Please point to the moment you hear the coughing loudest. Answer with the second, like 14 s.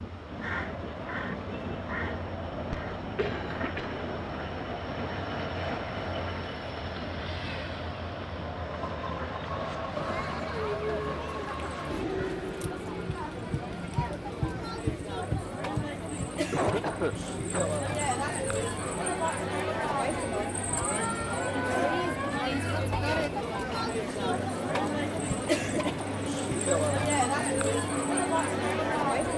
17 s.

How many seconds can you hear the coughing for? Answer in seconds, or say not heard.
4 s.